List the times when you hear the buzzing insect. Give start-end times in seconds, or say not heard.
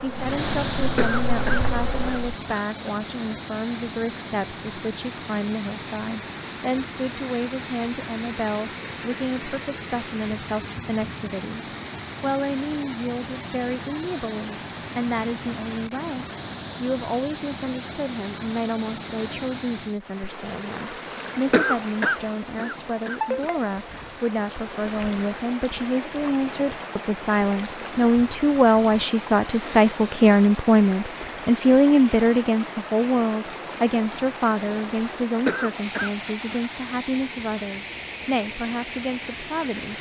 0.0-2.4.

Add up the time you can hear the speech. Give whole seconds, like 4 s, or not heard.
40 s.